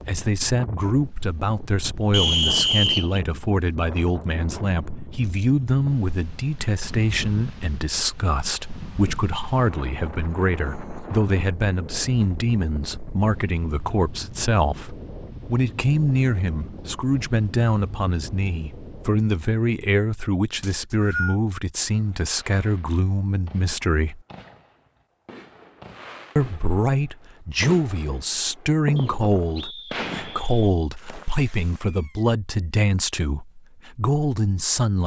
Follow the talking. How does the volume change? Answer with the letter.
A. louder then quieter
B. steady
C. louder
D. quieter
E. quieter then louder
B.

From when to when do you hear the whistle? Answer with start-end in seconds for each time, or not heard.
2.1-3.2, 20.6-21.4, 28.9-30.8.